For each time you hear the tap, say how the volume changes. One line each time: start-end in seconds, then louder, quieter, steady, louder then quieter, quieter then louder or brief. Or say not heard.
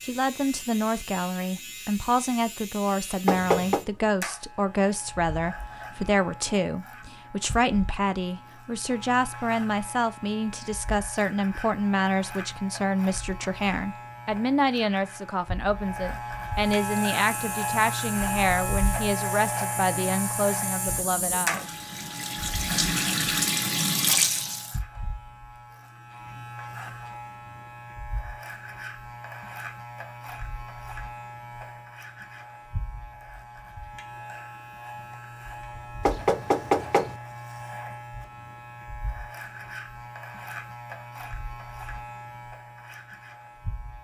16.6-24.8 louder.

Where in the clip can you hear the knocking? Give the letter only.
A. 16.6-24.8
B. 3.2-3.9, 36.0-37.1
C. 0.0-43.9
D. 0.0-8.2
B.